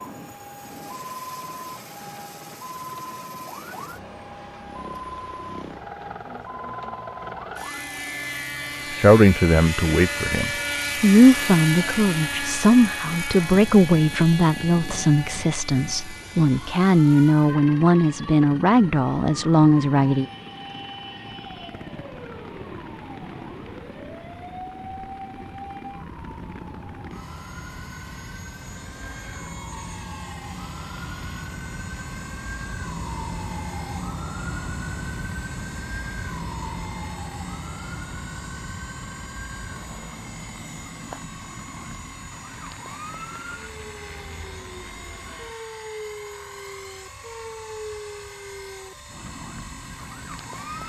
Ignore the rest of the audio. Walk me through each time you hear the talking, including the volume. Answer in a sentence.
The talking can be heard from 8.9 to 20.2 s, at a steady volume.